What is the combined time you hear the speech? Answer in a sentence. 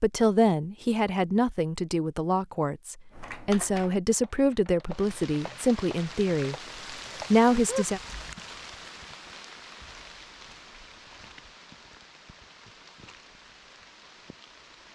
The speech can be heard for 7 seconds in total.